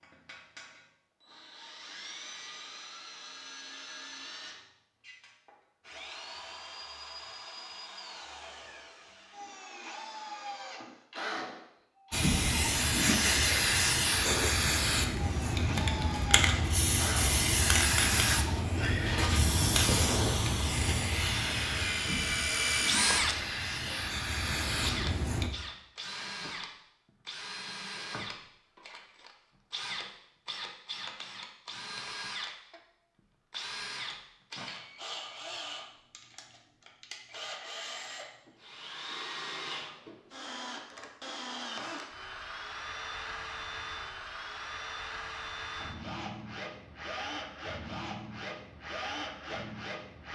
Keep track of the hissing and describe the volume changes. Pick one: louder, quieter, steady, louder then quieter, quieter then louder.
quieter.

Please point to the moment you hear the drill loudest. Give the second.
23 s.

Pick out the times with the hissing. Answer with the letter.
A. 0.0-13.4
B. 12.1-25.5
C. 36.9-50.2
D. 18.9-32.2
B.